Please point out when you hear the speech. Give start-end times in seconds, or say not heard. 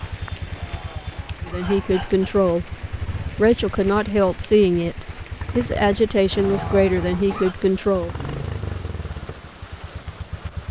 1.4-8.1.